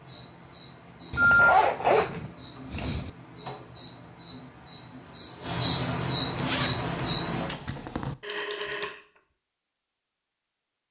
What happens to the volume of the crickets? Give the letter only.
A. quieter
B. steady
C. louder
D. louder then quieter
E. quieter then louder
C.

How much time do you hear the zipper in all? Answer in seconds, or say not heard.
4 s.